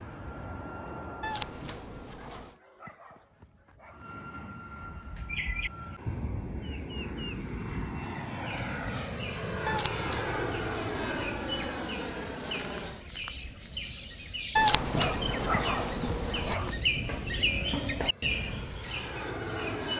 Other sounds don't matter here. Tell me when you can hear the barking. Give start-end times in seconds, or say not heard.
2.3-4.2, 14.9-16.9.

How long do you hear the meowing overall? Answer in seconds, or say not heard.
5 s.